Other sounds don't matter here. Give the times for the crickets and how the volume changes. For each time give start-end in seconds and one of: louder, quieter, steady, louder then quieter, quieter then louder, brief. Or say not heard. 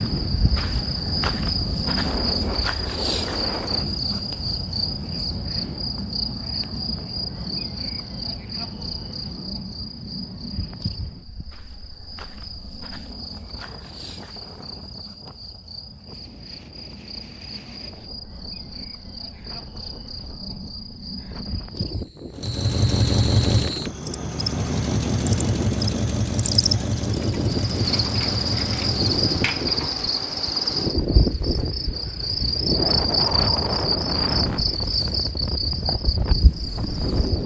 0.0-37.4 quieter then louder.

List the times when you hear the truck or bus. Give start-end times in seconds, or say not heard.
22.4-29.8.